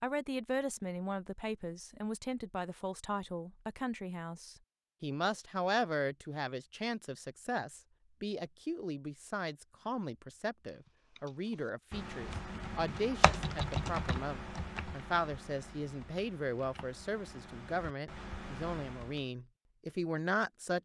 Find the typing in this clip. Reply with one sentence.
You can hear the typing from 11.2 to 19.2 s.